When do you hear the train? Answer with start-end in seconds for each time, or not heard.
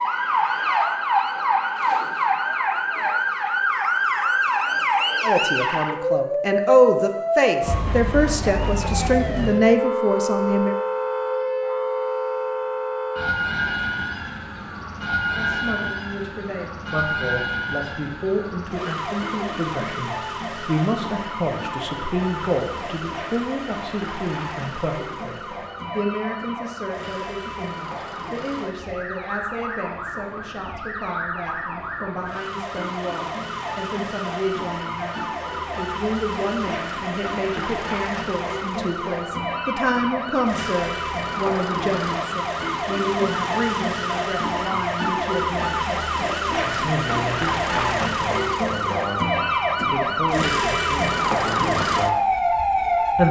not heard.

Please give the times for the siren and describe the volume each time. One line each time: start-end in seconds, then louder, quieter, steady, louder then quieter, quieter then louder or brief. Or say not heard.
0.0-53.2 quieter then louder.